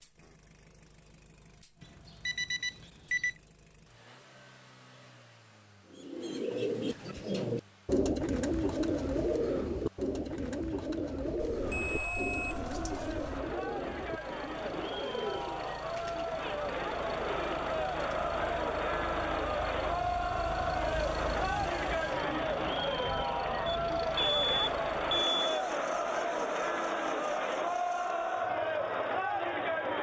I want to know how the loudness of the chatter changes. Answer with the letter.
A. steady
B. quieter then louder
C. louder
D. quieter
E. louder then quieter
C.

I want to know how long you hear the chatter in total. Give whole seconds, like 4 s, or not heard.
18 s.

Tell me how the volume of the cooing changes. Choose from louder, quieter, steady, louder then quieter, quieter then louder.
quieter.